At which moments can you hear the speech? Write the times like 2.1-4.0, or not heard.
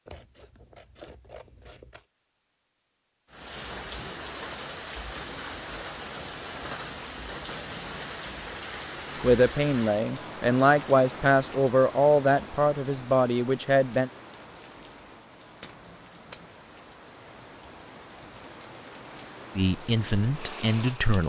9.2-14.1, 19.6-21.2.